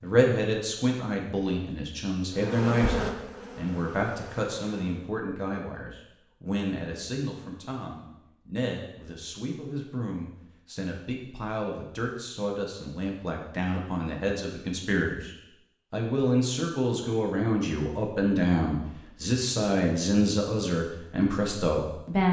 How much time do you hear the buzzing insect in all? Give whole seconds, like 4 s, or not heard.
3 s.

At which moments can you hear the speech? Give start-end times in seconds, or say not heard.
0.0-22.2.